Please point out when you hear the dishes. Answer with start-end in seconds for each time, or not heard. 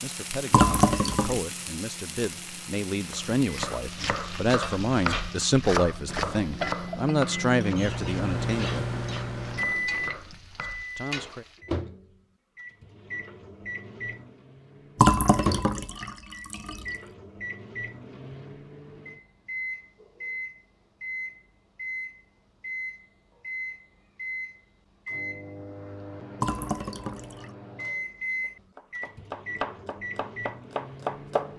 not heard.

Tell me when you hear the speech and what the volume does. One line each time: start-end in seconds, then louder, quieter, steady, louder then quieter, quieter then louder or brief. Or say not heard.
0.0-8.8 louder
10.9-11.4 brief.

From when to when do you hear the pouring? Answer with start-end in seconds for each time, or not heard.
0.5-1.4, 14.9-16.9, 26.4-27.5.